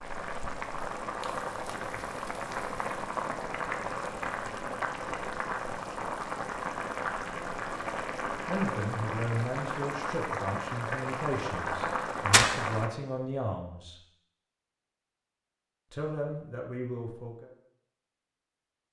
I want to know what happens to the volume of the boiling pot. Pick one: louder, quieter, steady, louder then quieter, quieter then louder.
steady.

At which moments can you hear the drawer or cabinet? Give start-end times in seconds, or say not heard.
not heard.